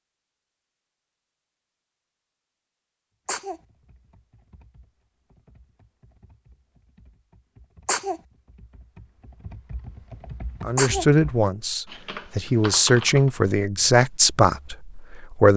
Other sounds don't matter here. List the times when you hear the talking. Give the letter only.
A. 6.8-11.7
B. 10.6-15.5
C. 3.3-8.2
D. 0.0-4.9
B.